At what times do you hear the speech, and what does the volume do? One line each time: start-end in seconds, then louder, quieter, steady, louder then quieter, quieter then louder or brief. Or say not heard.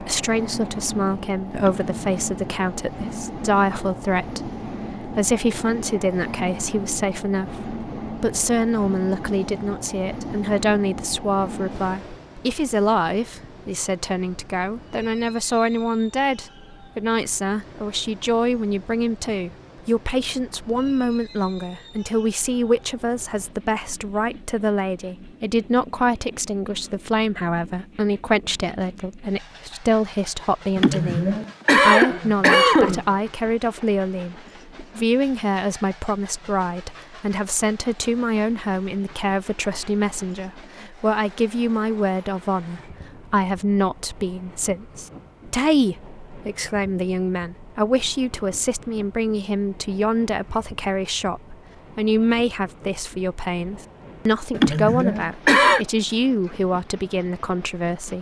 0.0-58.1 steady.